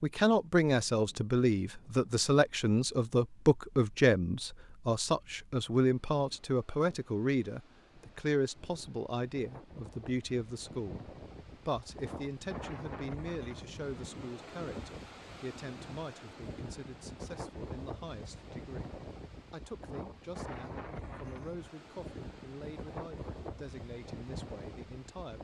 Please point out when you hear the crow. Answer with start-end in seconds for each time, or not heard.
not heard.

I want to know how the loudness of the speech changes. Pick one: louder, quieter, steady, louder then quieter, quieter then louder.
quieter.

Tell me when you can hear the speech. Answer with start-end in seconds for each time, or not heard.
0.0-11.1, 11.7-25.3.